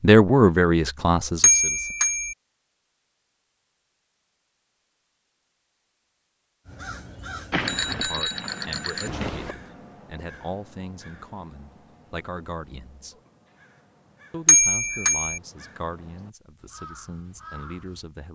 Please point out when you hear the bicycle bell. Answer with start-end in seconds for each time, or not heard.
1.4-2.4, 7.5-9.6, 14.4-15.4.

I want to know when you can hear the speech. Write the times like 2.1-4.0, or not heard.
0.0-1.9, 7.9-13.2, 14.3-18.2.